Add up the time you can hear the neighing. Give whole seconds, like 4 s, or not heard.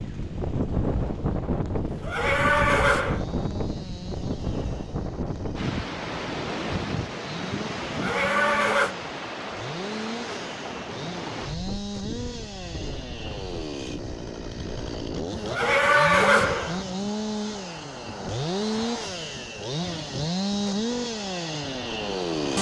4 s.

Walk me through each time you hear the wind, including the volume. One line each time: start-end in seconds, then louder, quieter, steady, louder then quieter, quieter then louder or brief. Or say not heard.
0.0-22.5 quieter.